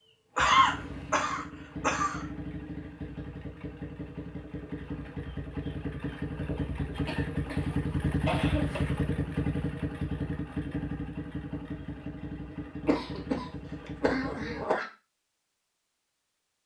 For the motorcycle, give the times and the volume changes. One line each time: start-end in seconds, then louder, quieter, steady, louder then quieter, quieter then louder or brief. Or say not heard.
0.0-14.7 louder then quieter.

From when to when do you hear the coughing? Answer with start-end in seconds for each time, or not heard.
0.3-2.2, 7.0-8.8, 12.8-14.8.